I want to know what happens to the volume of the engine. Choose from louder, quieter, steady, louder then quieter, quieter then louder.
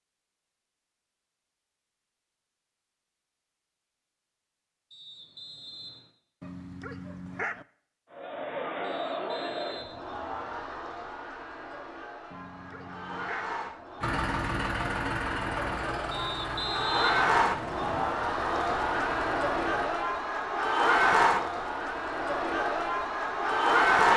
quieter.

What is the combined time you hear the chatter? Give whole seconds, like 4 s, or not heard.
16 s.